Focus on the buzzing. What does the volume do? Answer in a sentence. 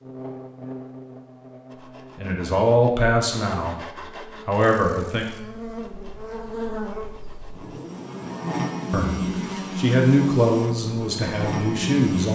The volume of the buzzing goes up.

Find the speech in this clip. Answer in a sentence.
The speech can be heard from 2.1 to 3.8 s, from 4.5 to 5.2 s and from 8.9 to 12.3 s.